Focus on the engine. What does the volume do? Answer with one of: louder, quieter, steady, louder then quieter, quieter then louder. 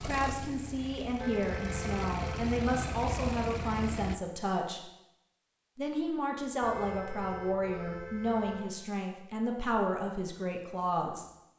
louder.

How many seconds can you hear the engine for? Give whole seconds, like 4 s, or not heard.
4 s.